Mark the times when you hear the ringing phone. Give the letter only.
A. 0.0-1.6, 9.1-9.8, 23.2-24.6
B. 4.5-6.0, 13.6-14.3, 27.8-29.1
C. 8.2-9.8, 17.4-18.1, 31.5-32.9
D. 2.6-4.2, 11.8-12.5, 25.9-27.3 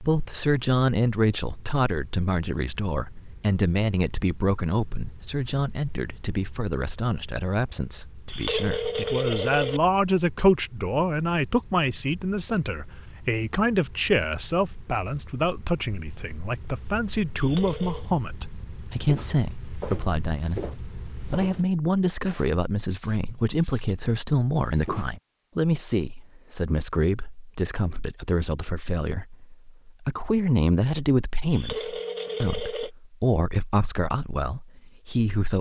C.